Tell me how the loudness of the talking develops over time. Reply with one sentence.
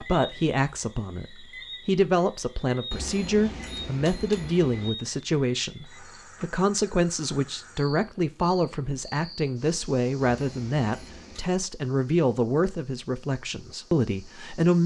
The volume of the talking stays about the same.